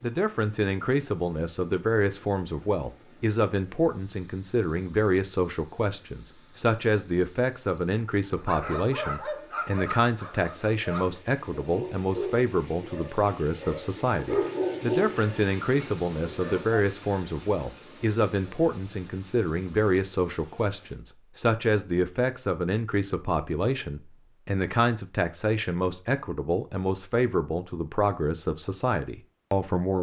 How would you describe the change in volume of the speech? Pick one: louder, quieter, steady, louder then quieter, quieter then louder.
steady.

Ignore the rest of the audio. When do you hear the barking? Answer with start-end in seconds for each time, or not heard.
8.4-16.8.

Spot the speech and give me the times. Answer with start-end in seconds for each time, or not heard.
0.0-29.9.